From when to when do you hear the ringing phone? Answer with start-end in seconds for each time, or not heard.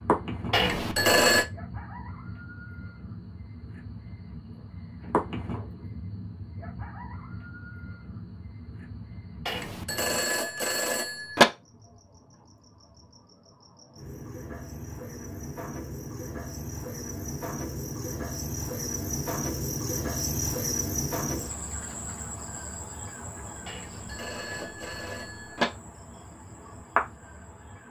0.5-1.4, 9.4-11.4, 23.6-25.6.